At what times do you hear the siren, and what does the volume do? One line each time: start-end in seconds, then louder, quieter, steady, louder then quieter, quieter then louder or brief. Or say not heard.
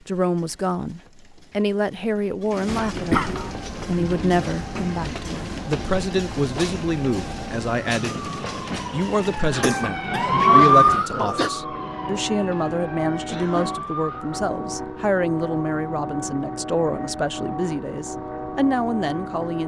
3.5-14.4 louder then quieter.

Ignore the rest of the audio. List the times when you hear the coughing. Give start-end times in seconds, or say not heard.
2.6-3.5, 9.5-11.5, 13.2-13.8.